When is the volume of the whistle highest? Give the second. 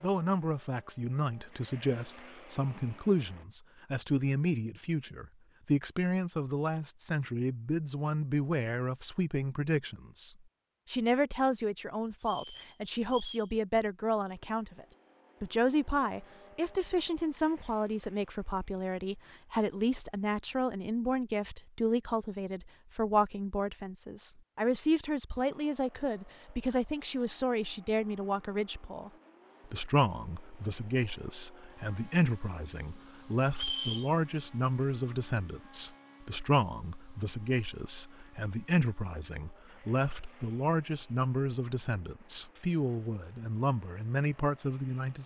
34 s.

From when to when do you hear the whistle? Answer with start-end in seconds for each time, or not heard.
12.2-13.5, 33.5-34.1.